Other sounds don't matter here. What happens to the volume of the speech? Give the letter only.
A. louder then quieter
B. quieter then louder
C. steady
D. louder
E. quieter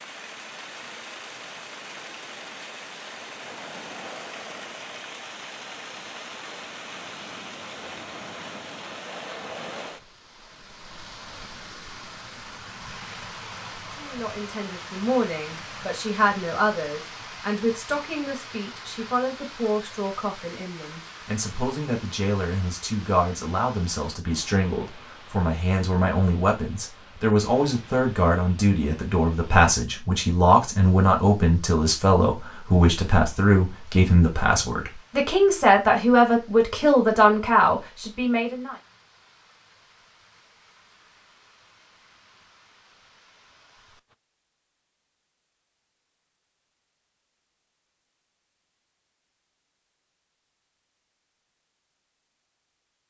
D.